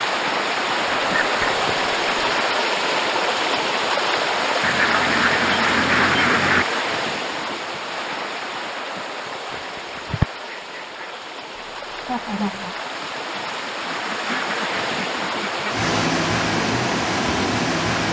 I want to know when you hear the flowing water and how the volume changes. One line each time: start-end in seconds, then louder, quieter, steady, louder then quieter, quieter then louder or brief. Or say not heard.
0.0-18.0 quieter then louder.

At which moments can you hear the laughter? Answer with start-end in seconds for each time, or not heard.
11.6-12.8.